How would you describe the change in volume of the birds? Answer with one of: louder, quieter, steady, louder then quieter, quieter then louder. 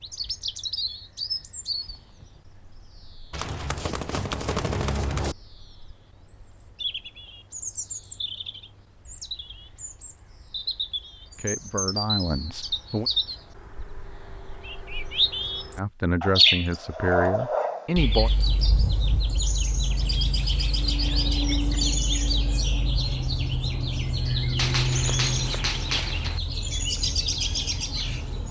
louder.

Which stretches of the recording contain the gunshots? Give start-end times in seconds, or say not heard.
3.3-5.3, 24.6-26.4.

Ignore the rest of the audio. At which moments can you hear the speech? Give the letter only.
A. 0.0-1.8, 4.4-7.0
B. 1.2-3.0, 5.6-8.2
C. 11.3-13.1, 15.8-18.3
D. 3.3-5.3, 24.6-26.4
C.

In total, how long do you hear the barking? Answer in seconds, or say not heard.
not heard.